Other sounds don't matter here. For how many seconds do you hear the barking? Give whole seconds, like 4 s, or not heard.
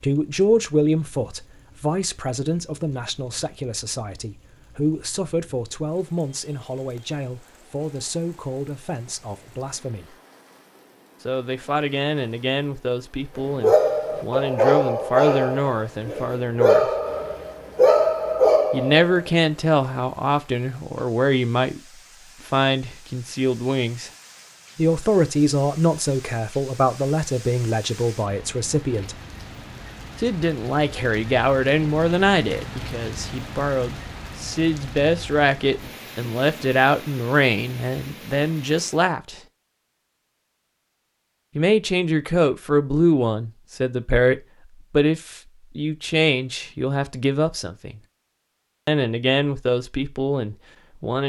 6 s.